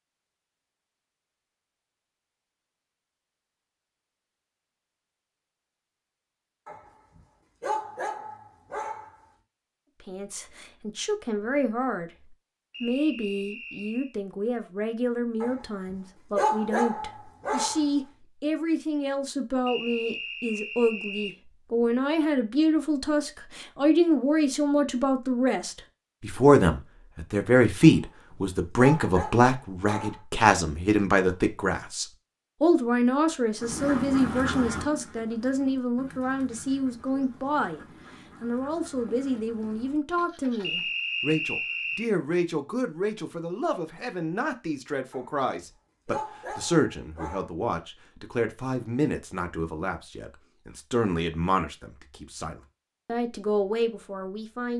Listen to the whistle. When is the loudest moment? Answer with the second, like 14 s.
41 s.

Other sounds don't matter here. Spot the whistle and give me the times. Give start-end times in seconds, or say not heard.
12.7-14.2, 19.6-21.4, 40.6-42.0.